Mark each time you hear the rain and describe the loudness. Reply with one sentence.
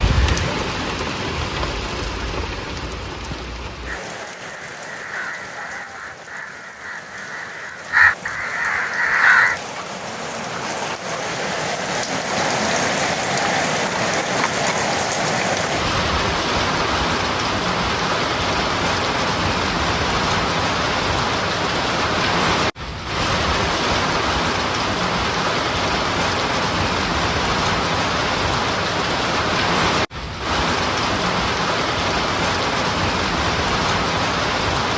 The rain can be heard from 0.0 to 34.9 s, getting louder.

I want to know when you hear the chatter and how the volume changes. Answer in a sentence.
The chatter can't be heard in this clip.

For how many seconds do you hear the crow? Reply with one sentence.
You can hear the crow for 6 seconds altogether.